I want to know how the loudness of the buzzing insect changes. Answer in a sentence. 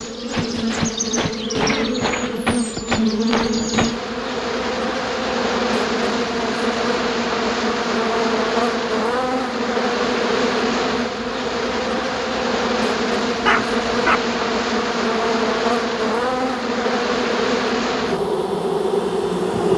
The loudness of the buzzing insect stays about the same.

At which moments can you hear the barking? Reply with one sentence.
The barking can be heard from 13.4 to 14.2 s.